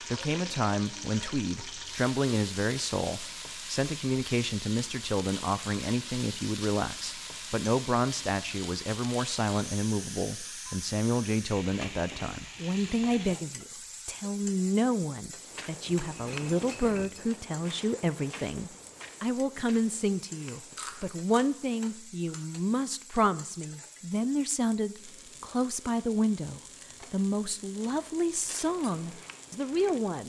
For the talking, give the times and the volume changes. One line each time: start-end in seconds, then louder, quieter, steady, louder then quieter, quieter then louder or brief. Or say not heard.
0.1-30.2 steady.